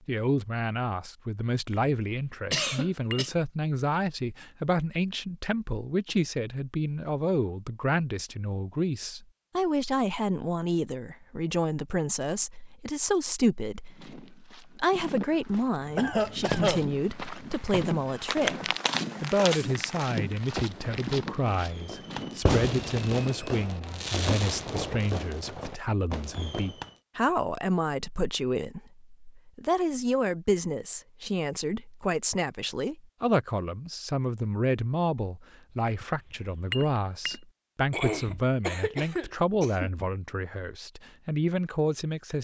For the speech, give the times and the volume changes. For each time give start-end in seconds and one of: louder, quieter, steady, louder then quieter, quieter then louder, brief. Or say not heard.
0.1-42.3 steady.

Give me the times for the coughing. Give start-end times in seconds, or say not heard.
2.5-3.3, 15.9-16.9, 37.9-39.9.